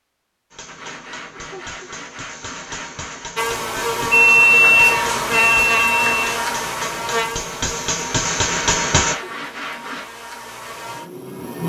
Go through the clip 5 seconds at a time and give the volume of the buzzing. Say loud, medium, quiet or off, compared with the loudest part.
loud, loud, medium.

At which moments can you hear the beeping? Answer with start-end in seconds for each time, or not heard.
4.1-6.3.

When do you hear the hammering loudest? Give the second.
9 s.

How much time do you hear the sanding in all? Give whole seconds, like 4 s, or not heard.
5 s.